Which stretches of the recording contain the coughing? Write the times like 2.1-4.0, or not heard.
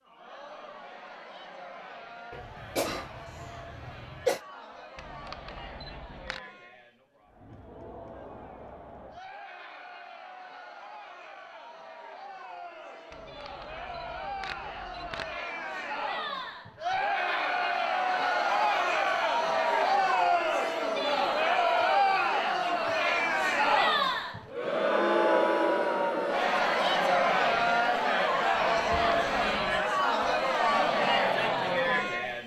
2.3-4.4.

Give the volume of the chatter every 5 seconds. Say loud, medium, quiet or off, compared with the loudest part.
quiet, quiet, quiet, loud, loud, loud, loud.